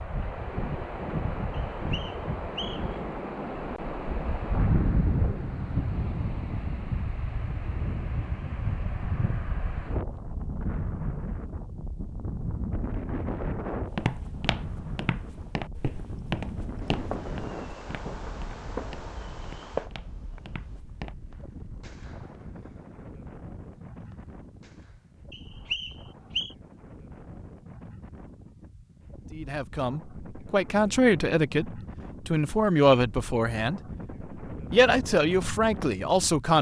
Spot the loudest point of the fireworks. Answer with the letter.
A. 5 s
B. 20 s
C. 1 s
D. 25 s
B.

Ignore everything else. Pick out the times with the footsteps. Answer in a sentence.
The footsteps can be heard from 13.9 to 21.1 s.